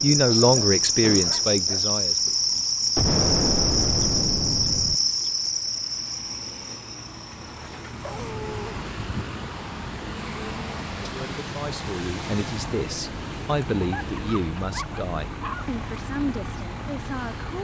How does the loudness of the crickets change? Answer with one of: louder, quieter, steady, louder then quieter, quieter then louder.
quieter.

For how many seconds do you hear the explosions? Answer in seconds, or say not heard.
2 s.